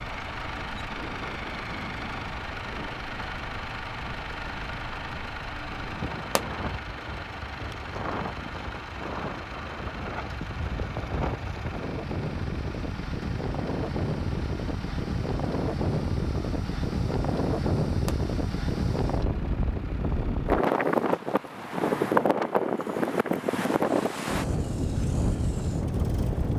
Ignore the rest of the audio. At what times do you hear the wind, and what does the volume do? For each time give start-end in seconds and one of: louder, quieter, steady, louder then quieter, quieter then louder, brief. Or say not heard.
0.0-26.5 louder.